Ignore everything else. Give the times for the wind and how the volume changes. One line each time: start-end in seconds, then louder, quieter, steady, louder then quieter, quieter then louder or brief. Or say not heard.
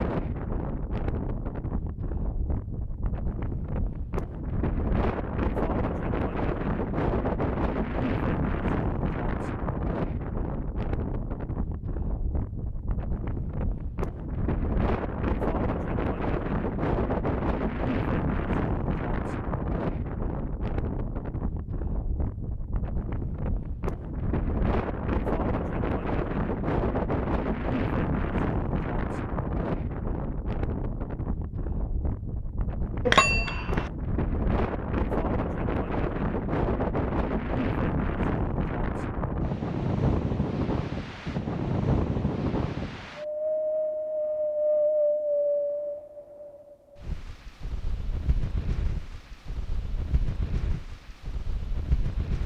0.0-52.4 steady.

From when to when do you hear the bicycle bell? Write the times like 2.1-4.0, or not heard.
33.0-33.9.